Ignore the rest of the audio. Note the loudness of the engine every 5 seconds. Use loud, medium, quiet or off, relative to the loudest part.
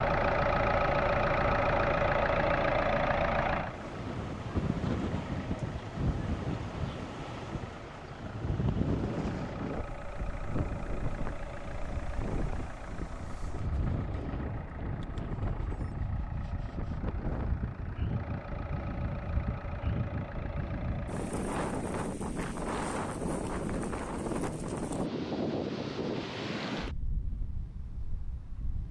loud, quiet, quiet, quiet, quiet, off.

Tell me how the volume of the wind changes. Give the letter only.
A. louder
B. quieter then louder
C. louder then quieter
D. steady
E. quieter
D.